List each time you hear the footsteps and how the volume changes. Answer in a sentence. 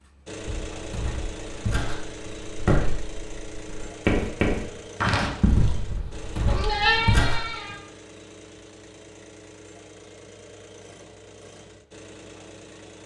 You can hear the footsteps from 0.4 to 7.4 s, getting louder then quieter.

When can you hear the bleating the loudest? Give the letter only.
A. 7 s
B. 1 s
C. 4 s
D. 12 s
A.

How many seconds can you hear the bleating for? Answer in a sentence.
The bleating can be heard for 3 seconds in total.